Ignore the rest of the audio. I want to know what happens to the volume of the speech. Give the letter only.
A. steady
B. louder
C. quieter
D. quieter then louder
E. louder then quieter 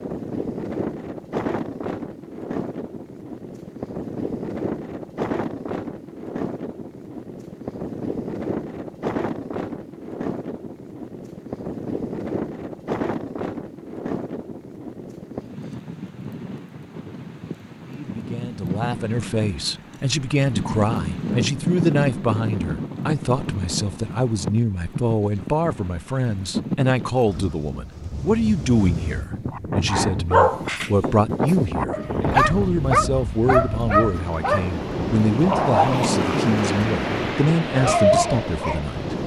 A.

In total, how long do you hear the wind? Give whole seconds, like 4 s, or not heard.
39 s.